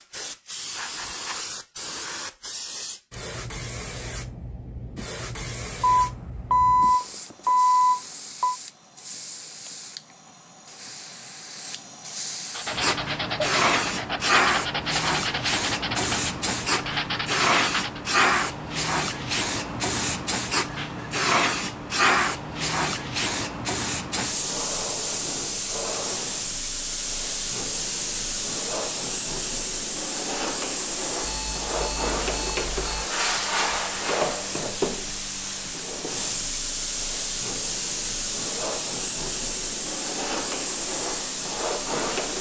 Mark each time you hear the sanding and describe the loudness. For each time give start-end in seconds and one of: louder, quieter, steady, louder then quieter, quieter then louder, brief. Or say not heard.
12.5-18.0 steady.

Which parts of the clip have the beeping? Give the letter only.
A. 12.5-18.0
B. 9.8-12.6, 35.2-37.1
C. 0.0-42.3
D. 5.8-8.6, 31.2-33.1
D.